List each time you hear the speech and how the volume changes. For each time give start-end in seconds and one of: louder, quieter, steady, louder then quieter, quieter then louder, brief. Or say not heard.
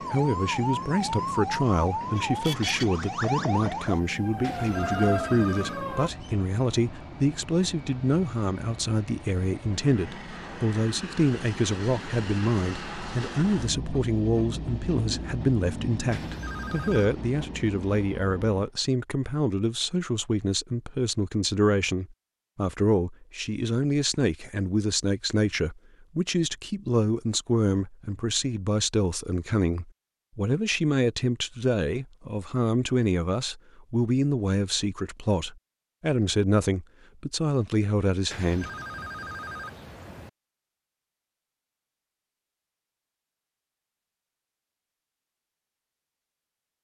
0.1-38.7 steady.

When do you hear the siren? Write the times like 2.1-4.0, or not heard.
0.0-6.1.